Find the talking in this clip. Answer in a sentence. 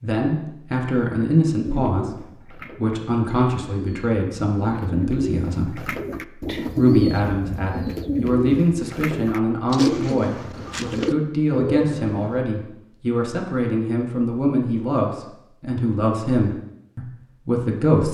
The talking can be heard from 0.0 to 2.1 s, from 2.8 to 5.8 s and from 6.8 to 18.0 s.